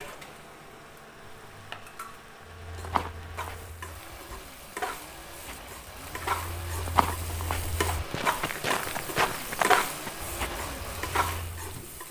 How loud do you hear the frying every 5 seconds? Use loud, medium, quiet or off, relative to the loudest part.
medium, loud, medium.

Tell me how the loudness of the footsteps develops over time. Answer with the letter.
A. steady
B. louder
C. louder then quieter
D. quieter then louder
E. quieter
D.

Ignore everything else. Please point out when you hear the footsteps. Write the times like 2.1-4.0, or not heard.
2.5-11.8.